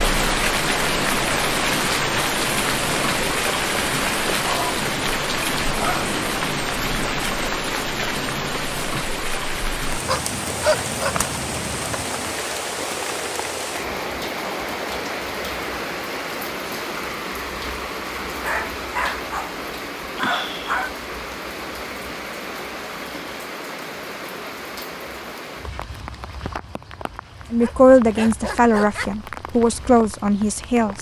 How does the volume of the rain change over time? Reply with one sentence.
The volume of the rain goes down.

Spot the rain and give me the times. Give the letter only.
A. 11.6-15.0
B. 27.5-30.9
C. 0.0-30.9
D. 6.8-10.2
C.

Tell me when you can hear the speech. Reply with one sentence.
The speech can be heard from 27.5 to 30.9 s.